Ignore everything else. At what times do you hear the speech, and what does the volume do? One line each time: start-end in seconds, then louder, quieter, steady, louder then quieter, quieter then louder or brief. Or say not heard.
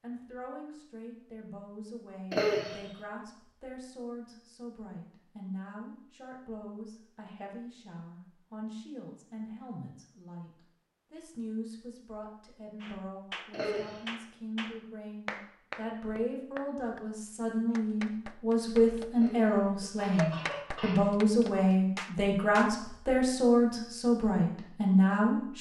0.0-25.5 louder.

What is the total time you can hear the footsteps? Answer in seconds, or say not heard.
not heard.